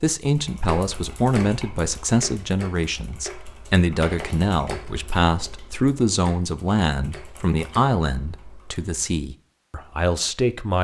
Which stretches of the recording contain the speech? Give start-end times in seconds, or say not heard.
0.0-10.7.